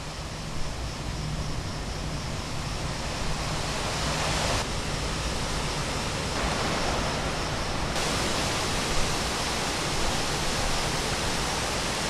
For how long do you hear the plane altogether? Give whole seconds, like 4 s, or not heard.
not heard.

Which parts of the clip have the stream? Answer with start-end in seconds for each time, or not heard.
0.0-12.0.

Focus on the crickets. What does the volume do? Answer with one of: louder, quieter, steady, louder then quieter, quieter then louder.
steady.